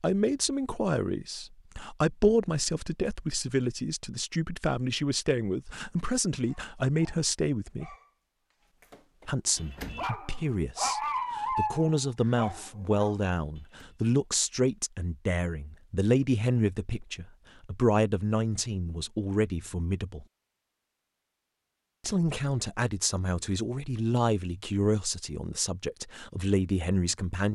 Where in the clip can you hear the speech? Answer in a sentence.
You can hear the speech from 0.0 to 8.0 s, from 9.2 to 20.2 s and from 22.0 to 27.5 s.